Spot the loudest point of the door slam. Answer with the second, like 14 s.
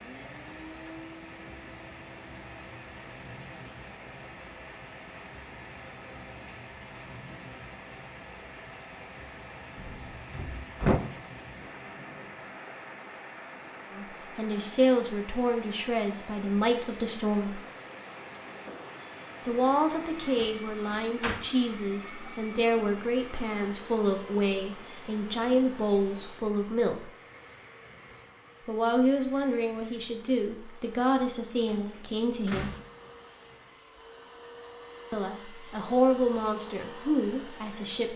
11 s.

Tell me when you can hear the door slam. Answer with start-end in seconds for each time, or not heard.
9.8-11.0, 20.4-21.4, 31.6-33.1.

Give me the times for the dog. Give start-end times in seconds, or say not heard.
not heard.